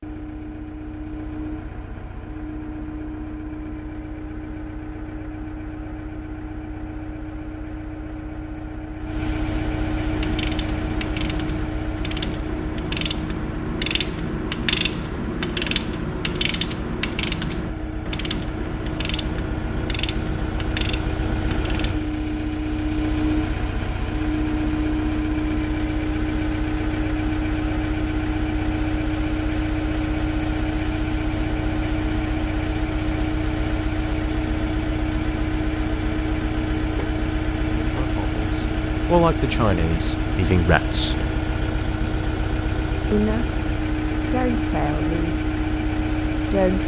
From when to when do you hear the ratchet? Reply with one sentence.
You can hear the ratchet from 10.1 to 21.9 s.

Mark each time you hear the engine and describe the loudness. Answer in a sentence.
You can hear the engine from 0.0 to 46.8 s, getting louder.